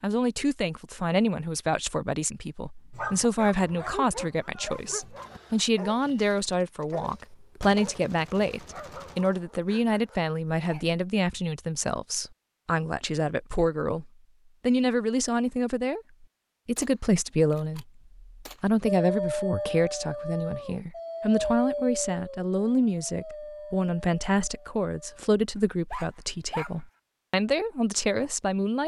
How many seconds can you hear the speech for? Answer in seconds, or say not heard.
28 s.